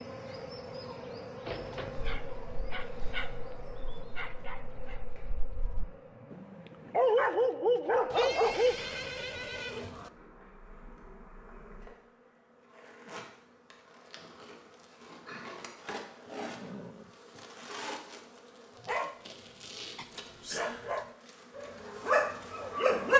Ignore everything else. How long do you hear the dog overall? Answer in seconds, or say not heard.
11 s.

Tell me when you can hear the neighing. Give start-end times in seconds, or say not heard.
1.4-2.1, 8.1-10.1, 16.4-17.1.